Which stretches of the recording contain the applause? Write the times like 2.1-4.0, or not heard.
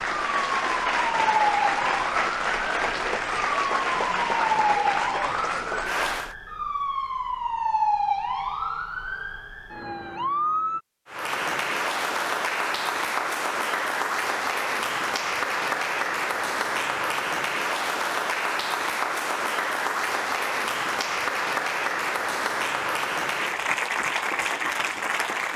0.0-6.3, 11.1-25.5.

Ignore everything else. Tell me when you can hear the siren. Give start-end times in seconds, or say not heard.
0.0-10.8.